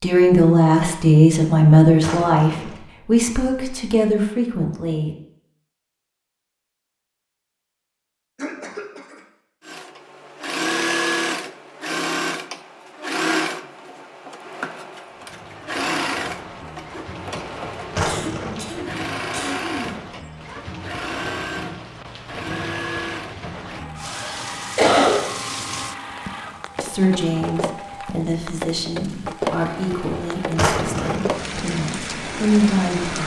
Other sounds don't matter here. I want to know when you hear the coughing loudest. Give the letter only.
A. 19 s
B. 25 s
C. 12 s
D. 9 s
B.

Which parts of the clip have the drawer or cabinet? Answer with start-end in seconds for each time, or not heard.
2.0-2.9, 17.9-18.8, 30.6-31.4.